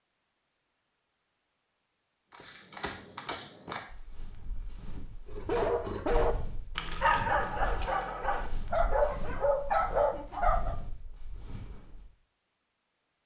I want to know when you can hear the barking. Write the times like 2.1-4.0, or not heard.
5.3-10.8.